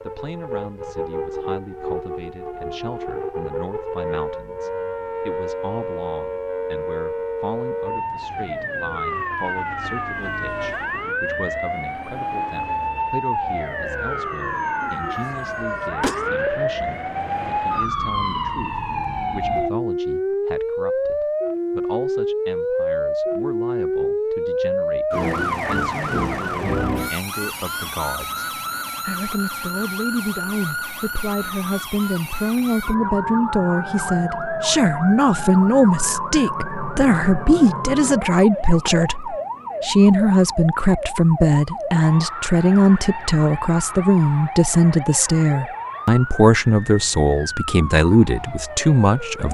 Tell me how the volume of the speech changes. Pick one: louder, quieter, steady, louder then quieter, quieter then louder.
louder.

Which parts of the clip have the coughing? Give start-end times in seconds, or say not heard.
14.8-16.2.